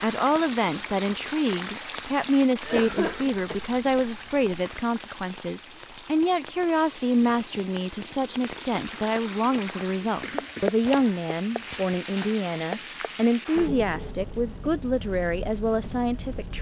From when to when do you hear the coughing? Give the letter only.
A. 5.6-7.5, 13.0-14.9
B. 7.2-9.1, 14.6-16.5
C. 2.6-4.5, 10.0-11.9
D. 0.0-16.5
C.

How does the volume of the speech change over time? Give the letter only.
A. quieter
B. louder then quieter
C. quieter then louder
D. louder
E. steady
E.